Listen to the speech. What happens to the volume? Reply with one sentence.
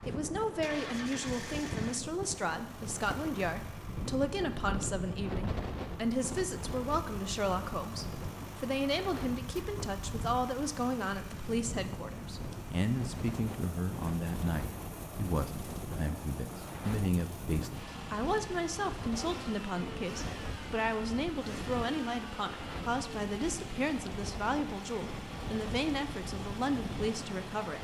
The loudness of the speech stays about the same.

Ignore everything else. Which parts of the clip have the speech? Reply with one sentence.
The speech can be heard from 0.1 to 27.7 s.